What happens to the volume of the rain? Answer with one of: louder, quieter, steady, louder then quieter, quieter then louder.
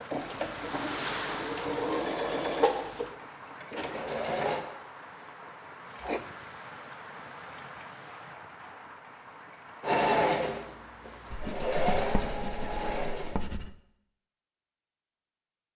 quieter.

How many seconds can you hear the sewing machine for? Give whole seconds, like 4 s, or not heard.
8 s.